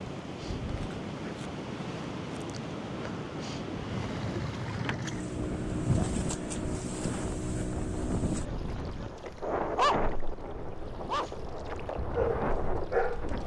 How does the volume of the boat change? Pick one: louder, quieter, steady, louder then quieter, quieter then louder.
quieter.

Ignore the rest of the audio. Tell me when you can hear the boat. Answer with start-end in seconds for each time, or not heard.
3.8-13.4.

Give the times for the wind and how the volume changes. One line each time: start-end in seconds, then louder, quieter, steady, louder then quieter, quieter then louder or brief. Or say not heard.
0.0-13.4 steady.